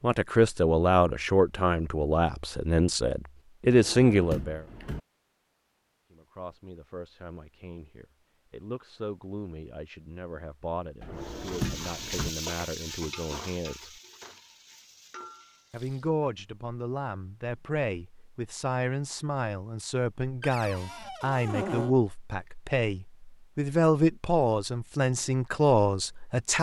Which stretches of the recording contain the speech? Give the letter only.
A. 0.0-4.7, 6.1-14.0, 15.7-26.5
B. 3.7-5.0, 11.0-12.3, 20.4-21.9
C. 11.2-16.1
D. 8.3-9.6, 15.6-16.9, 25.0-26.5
A.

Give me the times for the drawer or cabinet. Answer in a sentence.
The drawer or cabinet can be heard from 3.7 to 5.0 s, from 11.0 to 12.3 s and from 20.4 to 21.9 s.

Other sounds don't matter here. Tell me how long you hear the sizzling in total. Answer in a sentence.
You can hear the sizzling for 5 seconds altogether.